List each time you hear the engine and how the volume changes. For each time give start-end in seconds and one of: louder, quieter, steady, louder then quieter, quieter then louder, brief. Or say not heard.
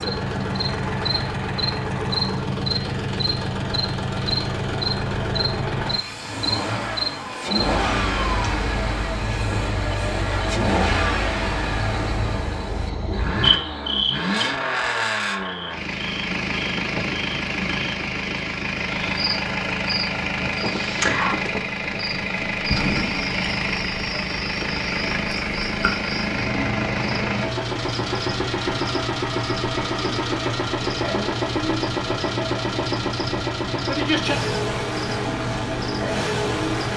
0.0-36.9 steady.